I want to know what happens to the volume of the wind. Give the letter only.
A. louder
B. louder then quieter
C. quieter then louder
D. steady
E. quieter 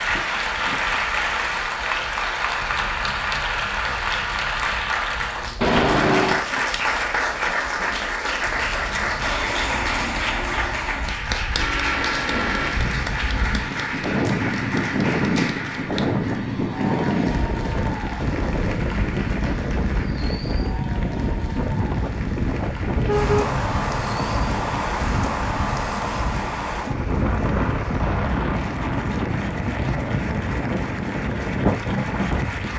A.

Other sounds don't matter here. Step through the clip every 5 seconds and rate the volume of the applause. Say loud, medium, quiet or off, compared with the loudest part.
loud, loud, loud, medium, quiet, quiet, medium.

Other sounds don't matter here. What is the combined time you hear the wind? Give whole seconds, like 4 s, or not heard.
33 s.